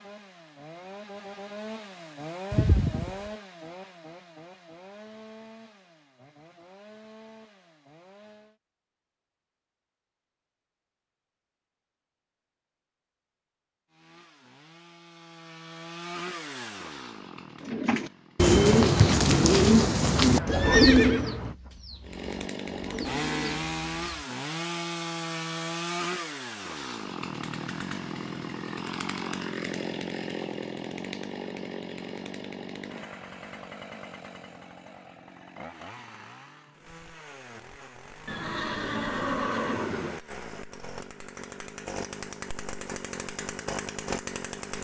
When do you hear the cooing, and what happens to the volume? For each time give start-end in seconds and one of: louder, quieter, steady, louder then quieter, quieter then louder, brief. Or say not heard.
17.6-24.2 quieter then louder.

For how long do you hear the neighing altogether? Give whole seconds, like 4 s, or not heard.
4 s.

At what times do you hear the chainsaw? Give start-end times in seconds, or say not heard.
0.0-8.6, 13.9-18.6, 22.0-44.7.